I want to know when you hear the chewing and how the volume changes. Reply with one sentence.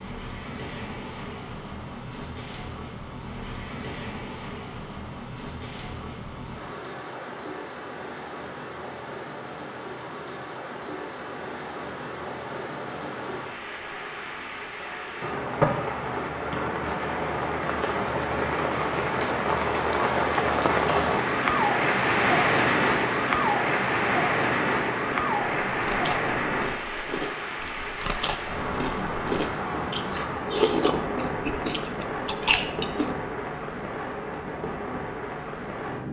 You can hear the chewing from 24.9 to 33.1 s, getting louder.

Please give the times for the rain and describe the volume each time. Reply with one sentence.
You can hear the rain from 0.0 to 36.0 s, getting louder then quieter.